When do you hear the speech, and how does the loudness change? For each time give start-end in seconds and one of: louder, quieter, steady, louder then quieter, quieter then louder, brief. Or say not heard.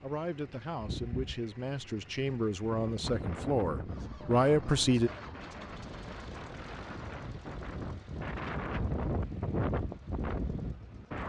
0.0-5.1 louder.